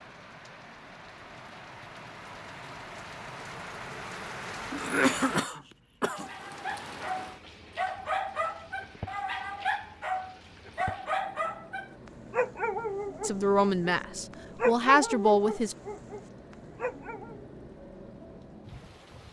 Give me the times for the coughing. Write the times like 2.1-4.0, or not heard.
4.7-6.2.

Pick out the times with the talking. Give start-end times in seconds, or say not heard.
13.2-15.8.